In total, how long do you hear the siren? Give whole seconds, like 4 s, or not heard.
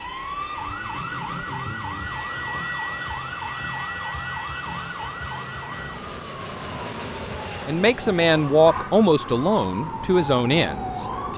11 s.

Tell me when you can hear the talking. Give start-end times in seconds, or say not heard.
7.7-11.3.